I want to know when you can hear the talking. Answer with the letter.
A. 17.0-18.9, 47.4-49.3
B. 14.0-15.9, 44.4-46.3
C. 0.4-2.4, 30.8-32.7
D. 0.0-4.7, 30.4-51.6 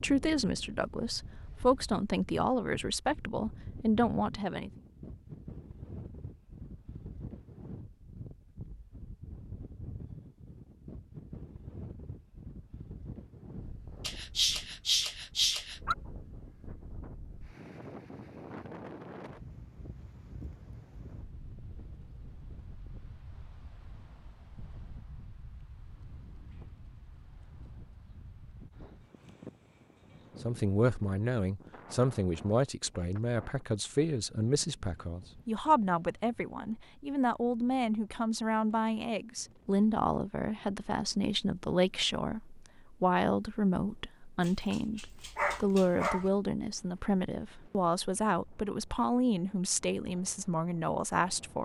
D.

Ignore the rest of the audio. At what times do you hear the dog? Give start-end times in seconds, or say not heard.
14.0-15.9, 44.4-46.3.